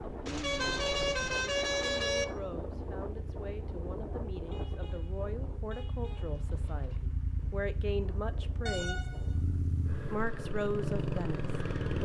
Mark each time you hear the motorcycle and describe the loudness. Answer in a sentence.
The motorcycle can be heard from 0.0 to 11.9 s, getting louder.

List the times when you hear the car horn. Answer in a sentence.
You can hear the car horn from 0.2 to 2.2 s, from 4.5 to 6.5 s and from 8.7 to 10.1 s.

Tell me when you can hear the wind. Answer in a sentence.
You can hear the wind from 0.0 to 9.3 s.